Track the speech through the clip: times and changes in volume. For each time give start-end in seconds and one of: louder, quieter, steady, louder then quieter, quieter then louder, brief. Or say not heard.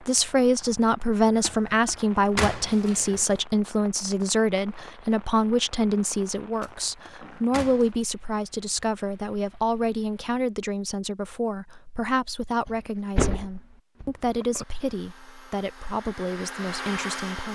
0.1-17.5 quieter.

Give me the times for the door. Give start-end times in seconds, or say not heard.
1.4-3.4, 6.6-7.9, 12.7-14.7.